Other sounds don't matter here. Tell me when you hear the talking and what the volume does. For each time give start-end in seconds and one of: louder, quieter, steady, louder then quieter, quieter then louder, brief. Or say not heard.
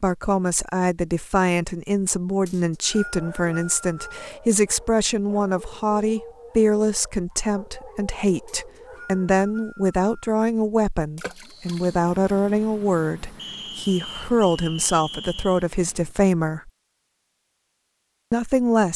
0.0-16.7 steady
18.3-18.9 brief.